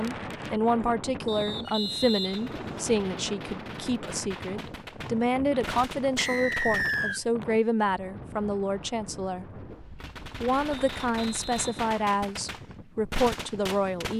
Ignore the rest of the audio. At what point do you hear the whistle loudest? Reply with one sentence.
The loudest moment of the whistle is at 7 seconds.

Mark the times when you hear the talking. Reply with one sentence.
You can hear the talking from 0.0 to 9.4 s and from 10.4 to 14.1 s.